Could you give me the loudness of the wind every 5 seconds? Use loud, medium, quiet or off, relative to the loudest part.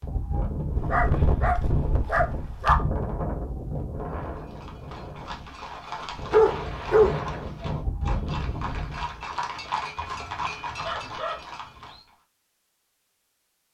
loud, loud, off.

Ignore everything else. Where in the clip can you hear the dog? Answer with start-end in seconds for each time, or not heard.
0.8-2.8, 6.3-7.2, 10.0-12.0.